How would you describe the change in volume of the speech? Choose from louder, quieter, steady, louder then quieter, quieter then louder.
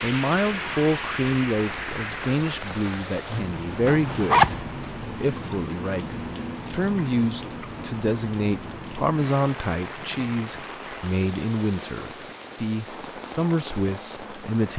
steady.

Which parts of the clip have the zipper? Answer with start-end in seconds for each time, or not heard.
3.9-4.7.